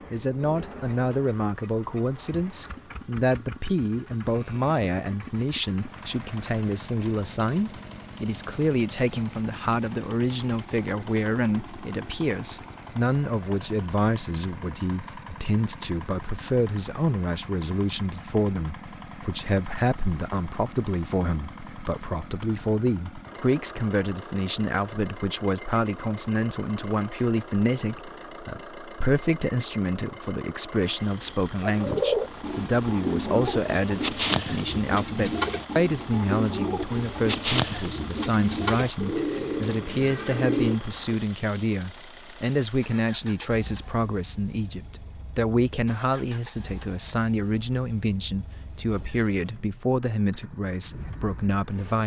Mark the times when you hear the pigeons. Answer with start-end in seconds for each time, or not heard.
31.6-41.1.